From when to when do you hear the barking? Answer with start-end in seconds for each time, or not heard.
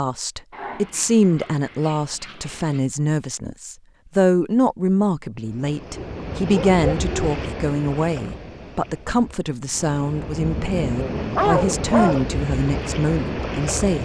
0.5-2.9, 6.0-7.4, 10.3-12.2.